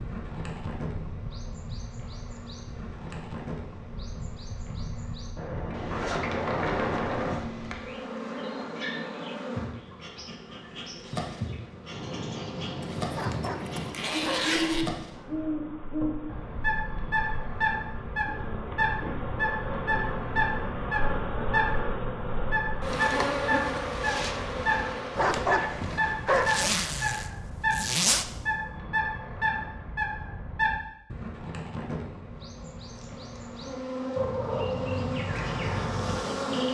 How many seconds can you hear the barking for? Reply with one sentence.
The barking can be heard for 3 seconds in total.